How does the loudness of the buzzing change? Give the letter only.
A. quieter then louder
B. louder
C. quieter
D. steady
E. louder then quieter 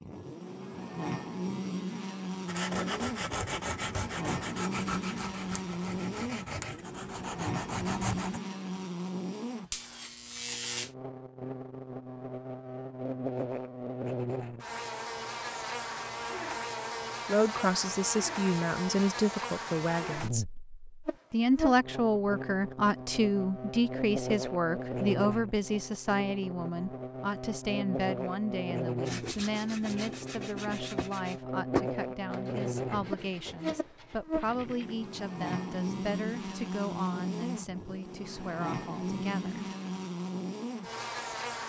D.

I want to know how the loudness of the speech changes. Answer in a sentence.
The loudness of the speech goes down.